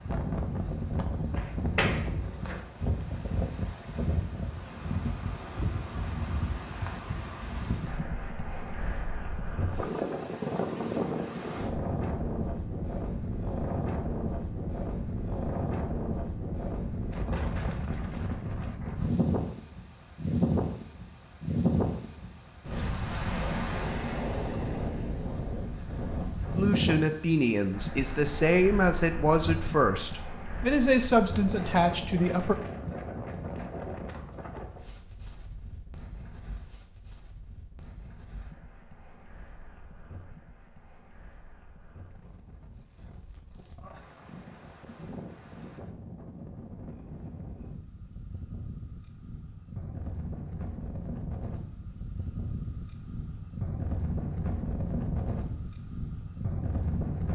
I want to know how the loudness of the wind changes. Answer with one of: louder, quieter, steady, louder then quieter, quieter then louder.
quieter then louder.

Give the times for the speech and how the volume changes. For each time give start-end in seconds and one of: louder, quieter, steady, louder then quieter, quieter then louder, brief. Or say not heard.
26.6-32.5 steady.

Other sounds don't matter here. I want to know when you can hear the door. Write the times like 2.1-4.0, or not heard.
1.4-2.6.